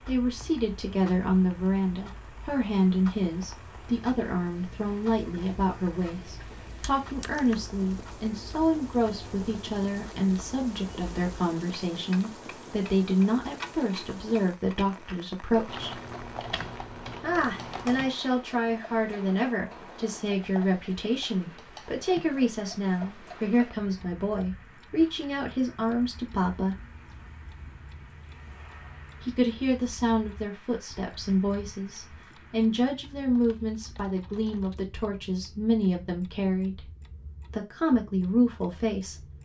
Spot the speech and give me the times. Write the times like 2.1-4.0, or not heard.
0.1-16.0, 17.2-26.8, 29.2-36.9, 37.5-39.2.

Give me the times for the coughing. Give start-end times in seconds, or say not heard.
not heard.